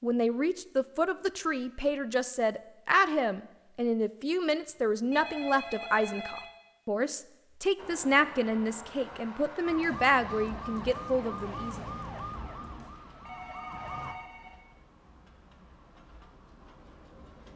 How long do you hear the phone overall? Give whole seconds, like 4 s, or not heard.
3 s.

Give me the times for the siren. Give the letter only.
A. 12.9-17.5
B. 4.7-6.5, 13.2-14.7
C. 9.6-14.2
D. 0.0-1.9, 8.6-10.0
C.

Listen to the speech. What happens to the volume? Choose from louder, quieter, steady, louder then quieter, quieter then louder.
steady.